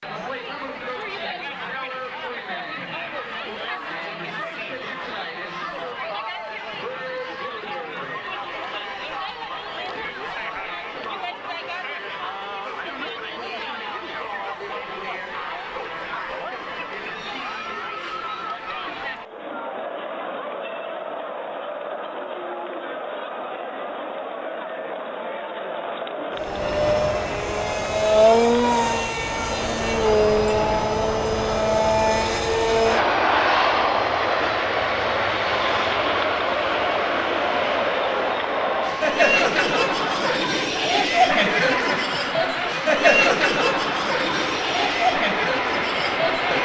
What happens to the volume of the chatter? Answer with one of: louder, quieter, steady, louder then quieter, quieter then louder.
louder.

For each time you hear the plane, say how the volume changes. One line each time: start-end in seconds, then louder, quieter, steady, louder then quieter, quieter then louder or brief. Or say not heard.
26.4-46.6 quieter.